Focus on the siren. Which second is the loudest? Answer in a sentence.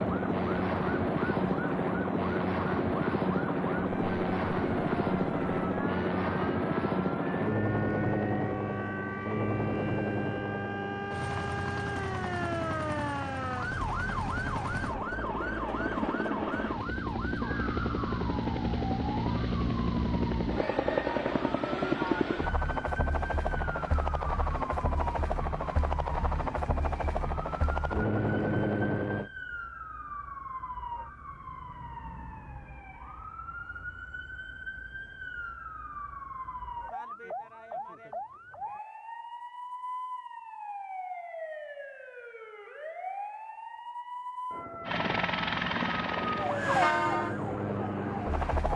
The volume of the siren peaks at 47 seconds.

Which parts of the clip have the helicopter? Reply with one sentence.
You can hear the helicopter from 0.0 to 29.3 s and from 44.9 to 48.7 s.